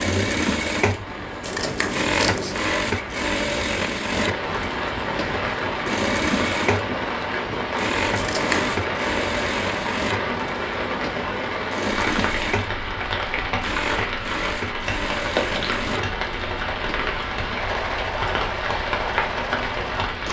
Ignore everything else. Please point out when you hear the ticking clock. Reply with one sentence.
You can't hear the ticking clock here.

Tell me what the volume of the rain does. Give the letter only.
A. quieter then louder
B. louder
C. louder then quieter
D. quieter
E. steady
B.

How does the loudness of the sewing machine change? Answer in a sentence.
The volume of the sewing machine goes down.